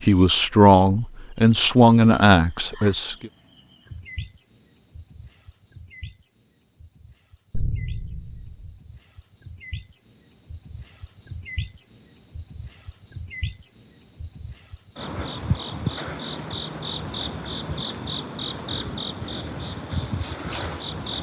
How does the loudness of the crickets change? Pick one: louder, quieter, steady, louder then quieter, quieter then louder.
quieter then louder.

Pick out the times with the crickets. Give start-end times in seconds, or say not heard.
0.0-21.1.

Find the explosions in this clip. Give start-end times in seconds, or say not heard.
7.5-8.8.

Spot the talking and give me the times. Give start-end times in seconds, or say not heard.
0.0-3.3.